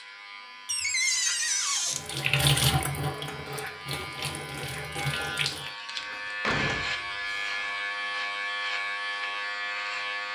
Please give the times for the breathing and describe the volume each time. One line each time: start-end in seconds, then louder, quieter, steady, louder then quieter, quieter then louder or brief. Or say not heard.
not heard.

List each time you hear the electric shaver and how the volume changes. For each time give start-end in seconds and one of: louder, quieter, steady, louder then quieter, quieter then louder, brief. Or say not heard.
0.0-10.2 louder.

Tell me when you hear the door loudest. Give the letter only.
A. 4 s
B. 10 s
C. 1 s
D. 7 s
C.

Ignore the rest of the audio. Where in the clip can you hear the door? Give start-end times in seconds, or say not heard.
0.7-2.0, 6.0-7.7.